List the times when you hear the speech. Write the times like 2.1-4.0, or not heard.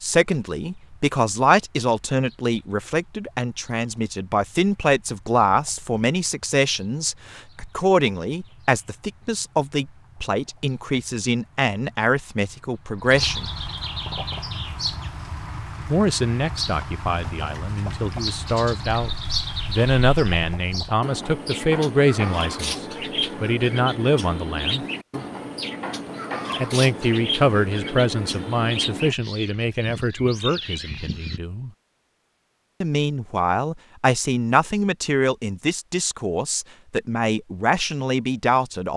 0.0-13.5, 15.8-24.9, 26.6-31.7, 32.8-38.9.